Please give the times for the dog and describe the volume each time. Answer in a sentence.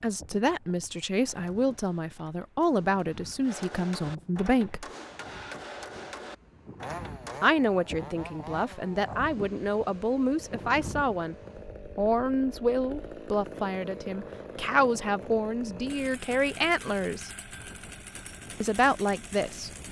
You can't hear the dog here.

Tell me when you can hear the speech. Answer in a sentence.
You can hear the speech from 0.0 to 4.8 s, from 7.4 to 11.3 s, from 11.9 to 17.3 s and from 18.6 to 19.8 s.